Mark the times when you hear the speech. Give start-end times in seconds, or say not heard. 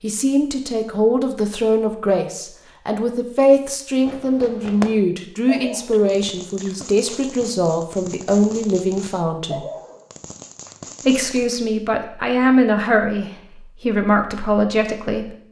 0.0-9.7, 11.1-15.3.